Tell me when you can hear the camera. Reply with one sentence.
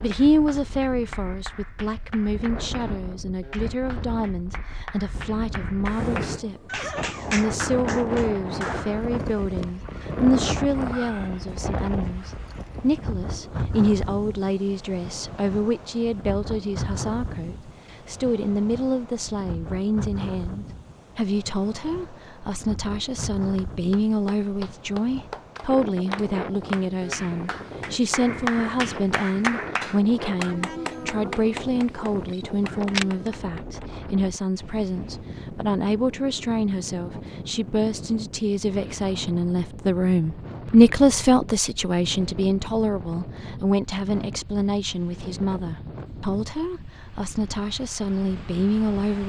You can hear the camera from 32.3 to 33.3 s.